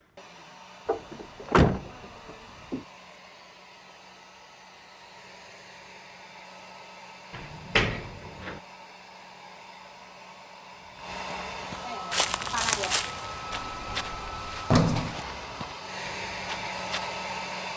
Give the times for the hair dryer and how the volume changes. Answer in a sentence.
The hair dryer can be heard from 0.0 to 17.7 s, getting louder.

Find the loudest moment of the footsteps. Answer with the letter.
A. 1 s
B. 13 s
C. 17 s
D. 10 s
B.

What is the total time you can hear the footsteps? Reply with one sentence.
The footsteps can be heard for 6 seconds in total.